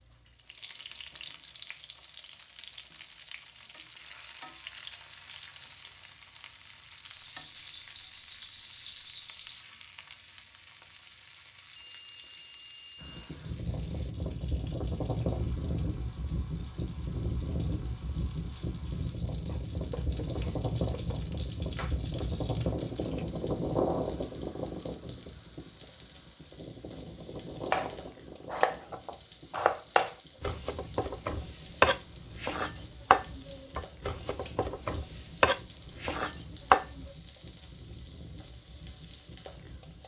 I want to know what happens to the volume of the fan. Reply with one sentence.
The volume of the fan goes down.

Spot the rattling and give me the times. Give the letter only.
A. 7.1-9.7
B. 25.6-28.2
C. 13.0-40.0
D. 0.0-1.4
A.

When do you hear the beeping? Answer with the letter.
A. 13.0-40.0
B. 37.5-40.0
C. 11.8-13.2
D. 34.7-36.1
C.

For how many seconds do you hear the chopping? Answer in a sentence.
You can hear the chopping for 12 seconds altogether.